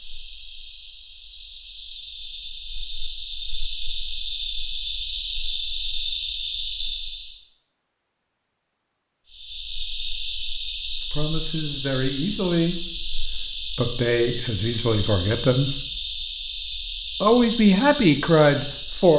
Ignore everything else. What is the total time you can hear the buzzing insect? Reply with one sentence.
The buzzing insect can be heard for 17 seconds in total.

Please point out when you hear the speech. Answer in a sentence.
The speech can be heard from 11.1 to 15.8 s and from 17.2 to 19.1 s.